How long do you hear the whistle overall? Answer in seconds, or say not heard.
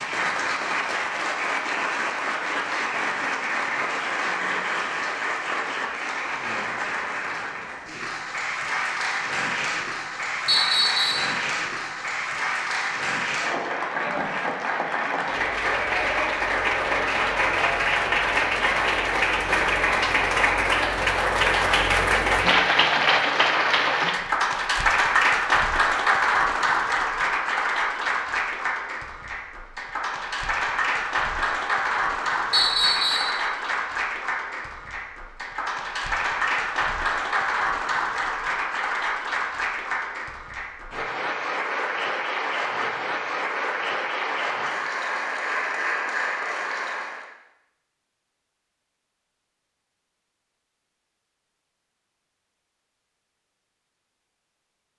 2 s.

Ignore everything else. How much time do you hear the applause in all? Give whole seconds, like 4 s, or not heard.
47 s.